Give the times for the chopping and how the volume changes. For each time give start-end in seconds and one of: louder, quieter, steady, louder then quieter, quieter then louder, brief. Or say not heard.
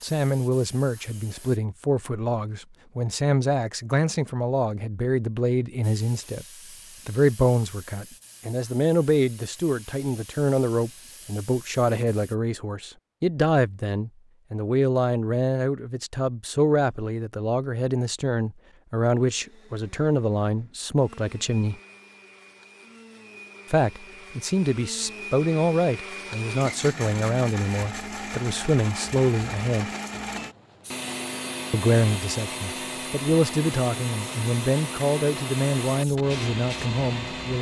not heard.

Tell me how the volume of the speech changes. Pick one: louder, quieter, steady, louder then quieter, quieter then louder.
steady.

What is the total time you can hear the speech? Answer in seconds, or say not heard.
33 s.